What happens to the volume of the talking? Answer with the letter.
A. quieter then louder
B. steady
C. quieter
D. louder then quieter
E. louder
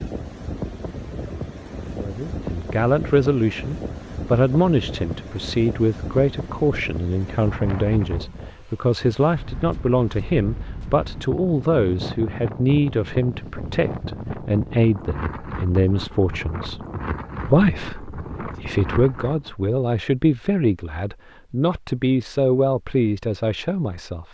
B.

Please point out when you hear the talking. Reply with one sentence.
You can hear the talking from 1.9 to 16.8 s and from 17.4 to 24.2 s.